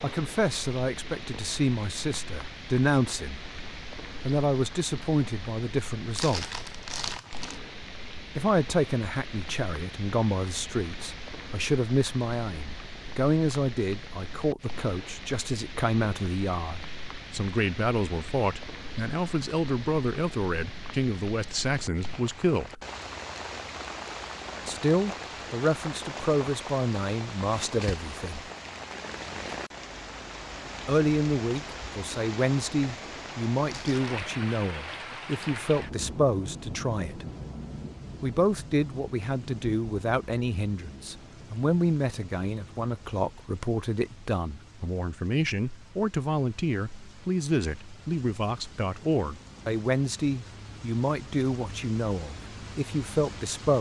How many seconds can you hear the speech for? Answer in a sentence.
You can hear the speech for 46 seconds altogether.